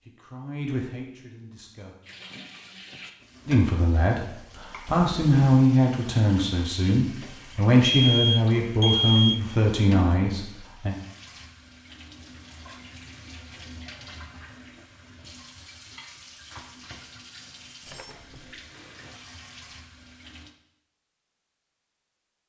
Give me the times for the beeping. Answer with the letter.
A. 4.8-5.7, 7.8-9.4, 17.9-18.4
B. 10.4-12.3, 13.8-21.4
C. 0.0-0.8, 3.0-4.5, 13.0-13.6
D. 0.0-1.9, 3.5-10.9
A.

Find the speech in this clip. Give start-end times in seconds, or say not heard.
0.0-1.9, 3.5-10.9.